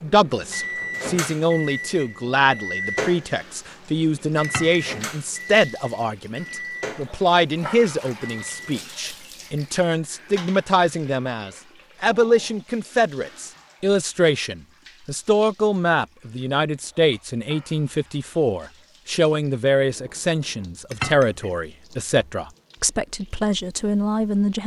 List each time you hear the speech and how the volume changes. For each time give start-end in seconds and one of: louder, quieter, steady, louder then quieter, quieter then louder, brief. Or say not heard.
0.0-24.6 steady.